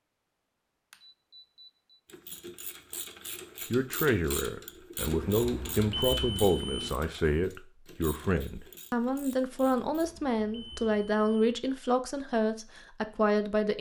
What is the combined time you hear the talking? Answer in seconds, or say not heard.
10 s.